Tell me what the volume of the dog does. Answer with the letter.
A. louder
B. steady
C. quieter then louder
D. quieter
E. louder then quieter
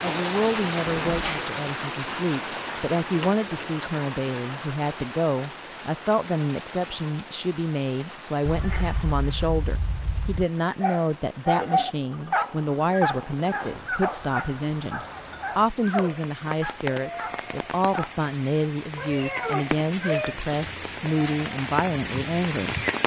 D.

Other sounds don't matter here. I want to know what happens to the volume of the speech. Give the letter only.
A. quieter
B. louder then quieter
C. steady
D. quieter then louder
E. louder
C.